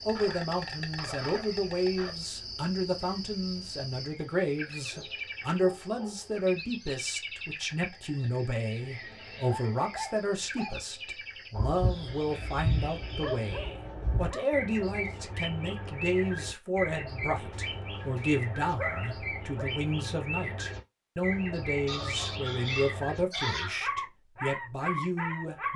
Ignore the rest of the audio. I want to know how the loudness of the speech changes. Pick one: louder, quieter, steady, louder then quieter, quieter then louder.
steady.